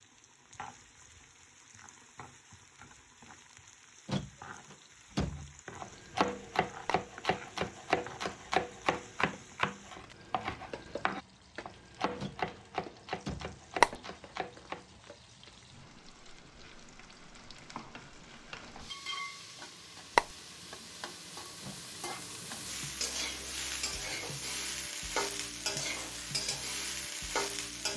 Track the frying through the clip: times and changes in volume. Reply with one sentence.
The frying can be heard from 0.0 to 27.9 s, getting louder.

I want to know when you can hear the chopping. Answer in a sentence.
You can hear the chopping from 5.3 to 15.1 s.